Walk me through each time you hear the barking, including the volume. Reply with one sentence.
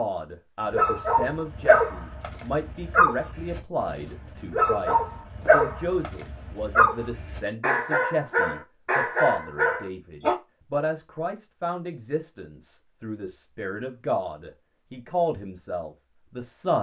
The barking can be heard from 0.7 to 10.3 s, at a steady volume.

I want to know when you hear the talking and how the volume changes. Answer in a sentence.
The talking can be heard from 0.0 to 16.7 s, at a steady volume.